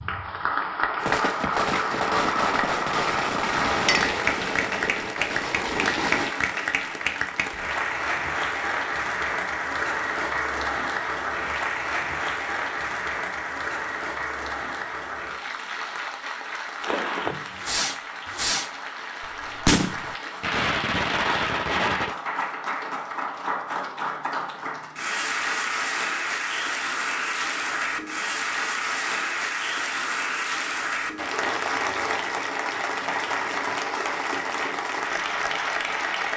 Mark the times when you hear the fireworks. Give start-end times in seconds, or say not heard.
1.0-6.3, 16.8-22.1.